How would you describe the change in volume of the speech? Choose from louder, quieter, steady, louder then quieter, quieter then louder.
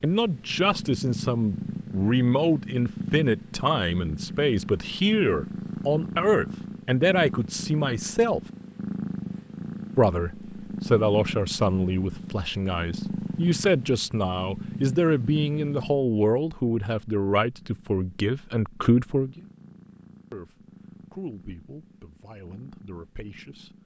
quieter.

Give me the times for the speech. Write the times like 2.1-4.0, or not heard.
0.0-8.4, 9.9-19.5, 20.3-23.8.